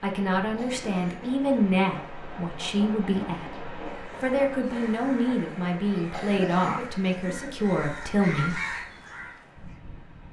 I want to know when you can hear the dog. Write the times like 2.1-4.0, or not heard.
not heard.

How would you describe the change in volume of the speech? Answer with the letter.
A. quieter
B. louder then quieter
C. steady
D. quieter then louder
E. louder
C.